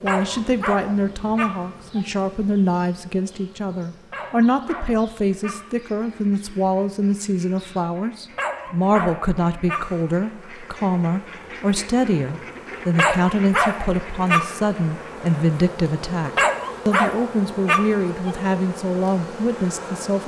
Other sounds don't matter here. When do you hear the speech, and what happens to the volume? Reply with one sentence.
The speech can be heard from 0.0 to 20.2 s, at a steady volume.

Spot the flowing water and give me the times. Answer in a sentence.
The flowing water can't be heard in this clip.